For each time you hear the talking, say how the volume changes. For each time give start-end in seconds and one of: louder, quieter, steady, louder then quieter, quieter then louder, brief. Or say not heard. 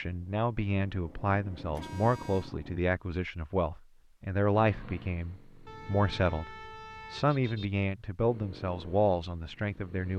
0.0-10.1 steady.